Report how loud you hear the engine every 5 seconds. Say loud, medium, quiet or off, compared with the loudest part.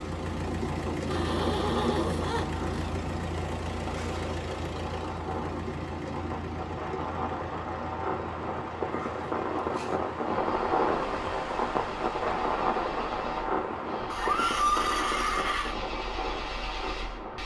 loud, medium, quiet, medium.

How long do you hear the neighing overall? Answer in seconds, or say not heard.
5 s.